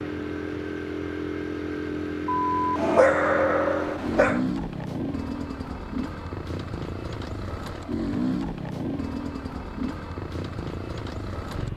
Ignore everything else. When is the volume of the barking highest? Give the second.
3 s.